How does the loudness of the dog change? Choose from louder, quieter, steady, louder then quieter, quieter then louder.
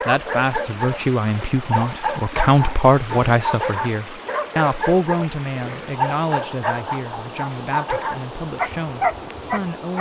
steady.